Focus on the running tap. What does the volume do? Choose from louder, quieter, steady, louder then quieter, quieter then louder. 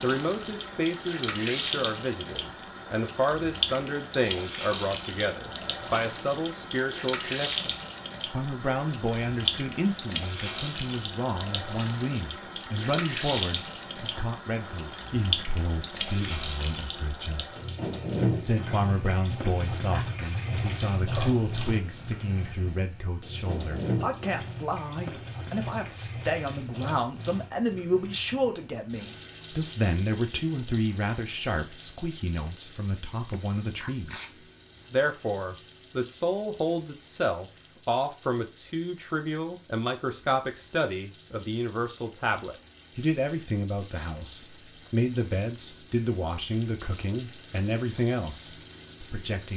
quieter.